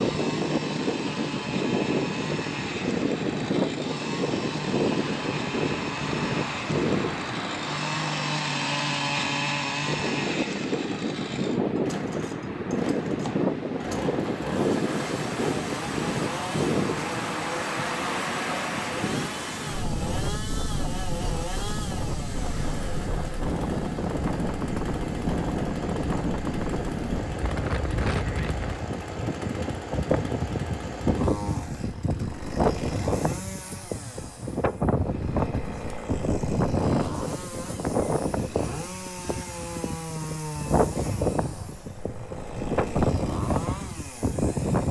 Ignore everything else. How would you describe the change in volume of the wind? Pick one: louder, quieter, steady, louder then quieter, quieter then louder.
steady.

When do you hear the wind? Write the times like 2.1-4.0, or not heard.
0.0-44.8.